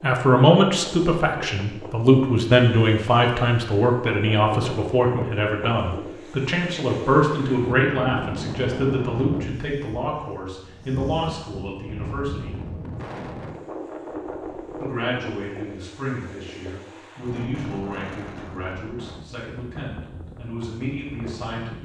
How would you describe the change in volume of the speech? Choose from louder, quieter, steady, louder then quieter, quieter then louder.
quieter.